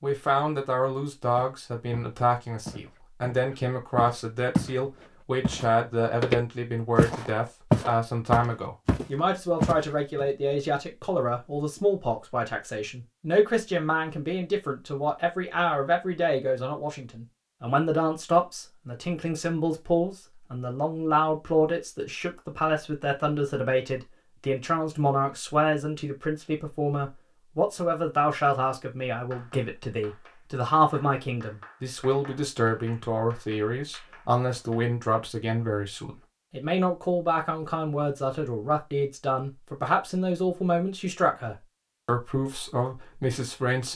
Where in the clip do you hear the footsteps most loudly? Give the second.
8 s.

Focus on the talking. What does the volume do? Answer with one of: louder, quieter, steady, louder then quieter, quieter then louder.
steady.